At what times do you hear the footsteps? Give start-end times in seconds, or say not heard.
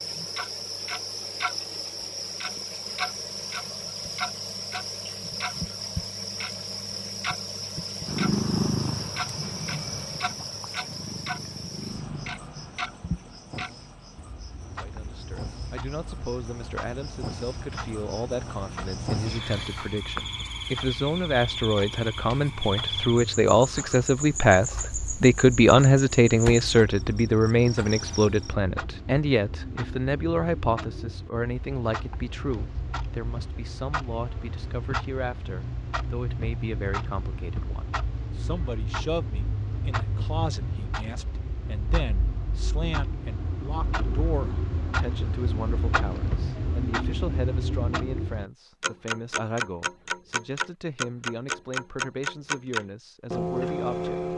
not heard.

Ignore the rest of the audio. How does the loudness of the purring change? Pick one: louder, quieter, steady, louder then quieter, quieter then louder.
quieter then louder.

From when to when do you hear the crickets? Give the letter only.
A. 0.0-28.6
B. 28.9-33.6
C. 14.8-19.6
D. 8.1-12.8
A.